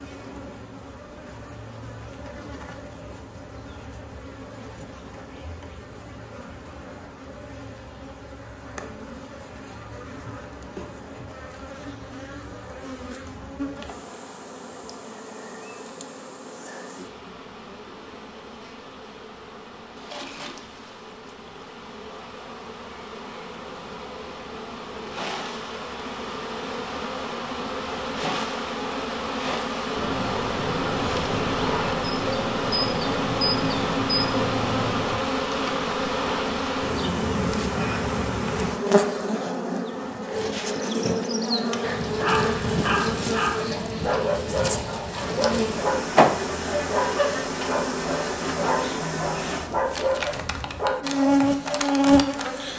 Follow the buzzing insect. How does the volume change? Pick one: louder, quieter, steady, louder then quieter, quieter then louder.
louder.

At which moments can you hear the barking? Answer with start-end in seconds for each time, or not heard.
42.1-52.0.